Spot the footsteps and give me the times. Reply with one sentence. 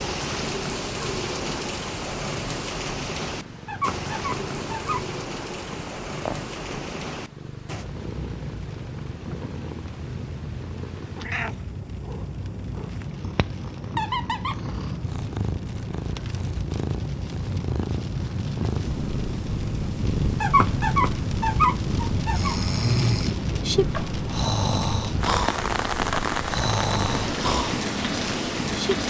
You can't hear the footsteps here.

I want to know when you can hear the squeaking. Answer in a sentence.
The squeaking can be heard from 3.6 to 5.0 s, from 13.9 to 14.6 s and from 20.4 to 22.7 s.